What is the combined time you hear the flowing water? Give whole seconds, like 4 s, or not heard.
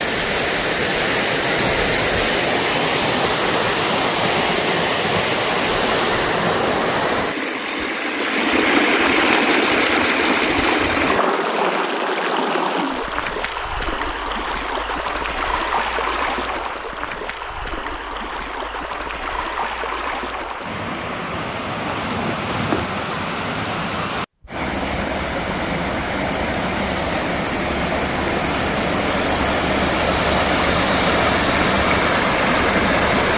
33 s.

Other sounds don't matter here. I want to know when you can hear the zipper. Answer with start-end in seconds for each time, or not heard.
21.8-22.9.